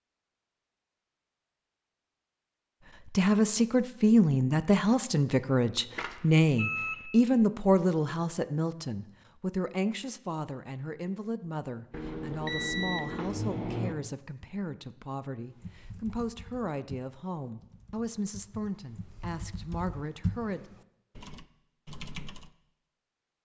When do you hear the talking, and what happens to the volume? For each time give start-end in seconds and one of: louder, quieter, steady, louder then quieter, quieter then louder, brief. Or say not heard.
3.0-20.6 quieter.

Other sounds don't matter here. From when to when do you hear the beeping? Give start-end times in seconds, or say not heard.
5.9-7.0, 11.9-13.9.